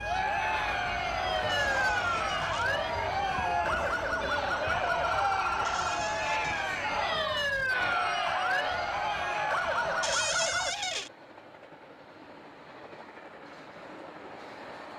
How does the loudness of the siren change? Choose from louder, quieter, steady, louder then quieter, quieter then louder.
steady.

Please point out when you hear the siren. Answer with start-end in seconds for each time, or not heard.
0.0-10.8.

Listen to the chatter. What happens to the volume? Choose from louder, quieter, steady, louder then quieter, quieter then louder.
steady.